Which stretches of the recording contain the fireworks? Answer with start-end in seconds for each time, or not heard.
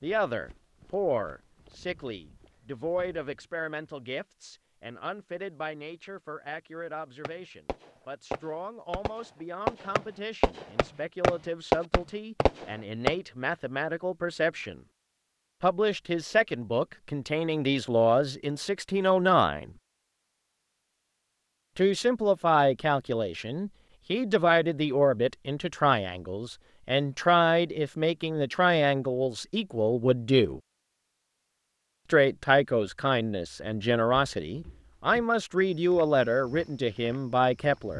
7.2-13.2.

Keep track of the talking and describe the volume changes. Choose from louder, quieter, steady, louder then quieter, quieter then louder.
louder.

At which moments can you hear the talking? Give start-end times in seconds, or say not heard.
0.0-14.8, 15.6-19.7, 21.8-30.6, 32.1-37.9.